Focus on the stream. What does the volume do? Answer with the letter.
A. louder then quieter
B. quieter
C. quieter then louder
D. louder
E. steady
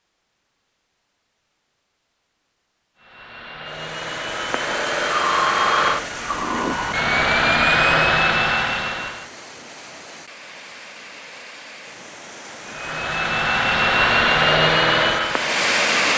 C.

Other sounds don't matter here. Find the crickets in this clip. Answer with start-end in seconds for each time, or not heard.
not heard.